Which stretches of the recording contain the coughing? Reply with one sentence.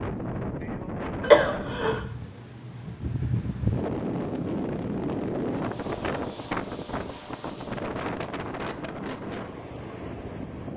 You can hear the coughing from 1.2 to 2.0 s.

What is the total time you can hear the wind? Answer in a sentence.
You can hear the wind for 11 seconds altogether.